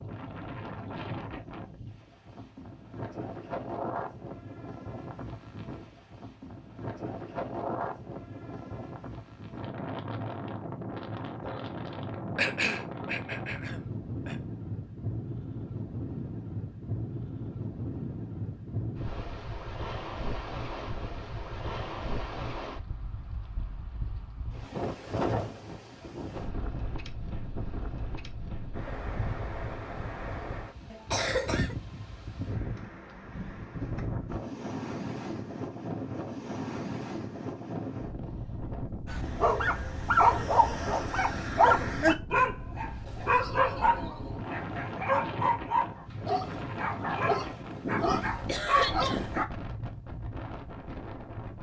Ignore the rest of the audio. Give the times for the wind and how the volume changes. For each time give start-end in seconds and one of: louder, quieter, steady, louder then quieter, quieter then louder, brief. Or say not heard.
0.0-51.5 steady.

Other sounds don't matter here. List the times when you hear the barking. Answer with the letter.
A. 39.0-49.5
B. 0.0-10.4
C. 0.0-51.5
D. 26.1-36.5
A.